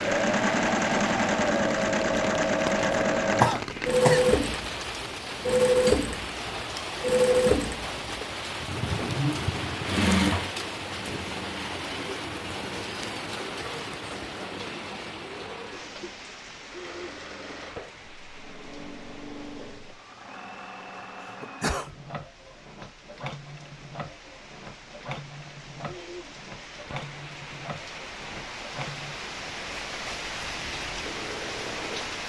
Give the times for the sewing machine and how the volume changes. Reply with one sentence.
The sewing machine can be heard from 0.0 to 32.2 s, getting quieter.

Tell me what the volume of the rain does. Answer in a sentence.
The loudness of the rain goes down, then up.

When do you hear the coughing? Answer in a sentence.
The coughing can be heard from 2.9 to 4.3 s and from 21.2 to 21.9 s.